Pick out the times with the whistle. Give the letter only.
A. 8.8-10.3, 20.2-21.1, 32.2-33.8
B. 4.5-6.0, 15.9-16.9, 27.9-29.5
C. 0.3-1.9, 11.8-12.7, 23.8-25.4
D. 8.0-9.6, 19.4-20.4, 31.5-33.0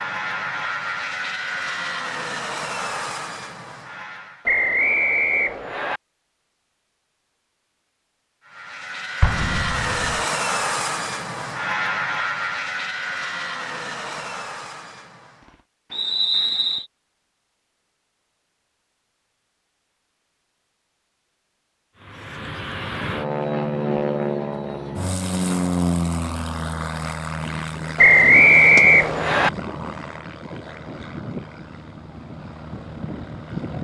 B.